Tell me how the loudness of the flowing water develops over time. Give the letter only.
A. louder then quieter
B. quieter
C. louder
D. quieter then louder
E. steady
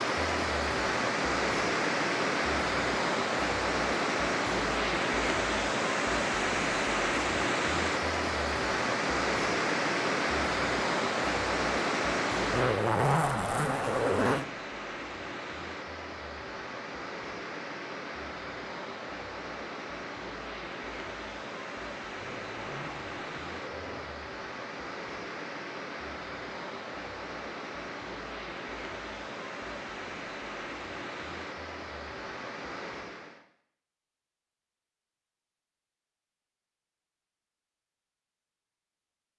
B.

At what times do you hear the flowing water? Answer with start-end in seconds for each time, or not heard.
0.0-33.5.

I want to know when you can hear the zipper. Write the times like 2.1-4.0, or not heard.
12.5-14.4, 22.2-24.1.